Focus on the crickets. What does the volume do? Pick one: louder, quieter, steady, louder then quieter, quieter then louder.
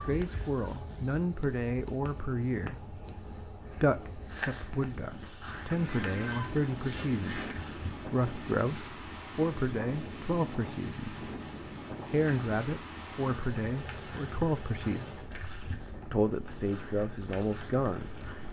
quieter.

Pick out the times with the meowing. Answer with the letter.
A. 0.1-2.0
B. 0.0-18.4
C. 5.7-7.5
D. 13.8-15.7
C.